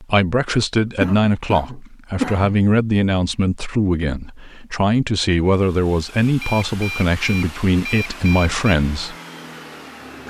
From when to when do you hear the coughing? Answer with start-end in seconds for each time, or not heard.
0.8-2.5.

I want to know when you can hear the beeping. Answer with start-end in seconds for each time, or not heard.
6.4-8.8.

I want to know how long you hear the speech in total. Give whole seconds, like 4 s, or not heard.
9 s.